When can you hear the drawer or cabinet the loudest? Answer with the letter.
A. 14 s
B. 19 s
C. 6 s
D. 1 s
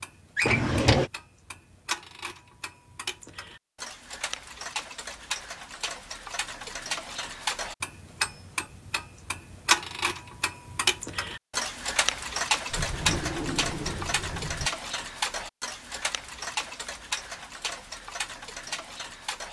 D.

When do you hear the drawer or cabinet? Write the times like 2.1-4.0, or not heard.
0.3-1.1, 12.7-14.7.